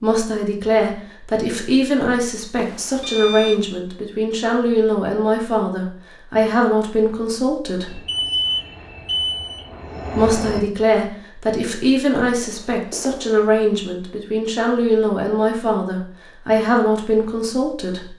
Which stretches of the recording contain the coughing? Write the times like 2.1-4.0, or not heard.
not heard.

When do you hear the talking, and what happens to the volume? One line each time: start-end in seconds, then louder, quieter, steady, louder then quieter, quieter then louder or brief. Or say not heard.
0.0-8.0 steady
10.2-18.1 steady.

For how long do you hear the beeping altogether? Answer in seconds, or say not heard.
4 s.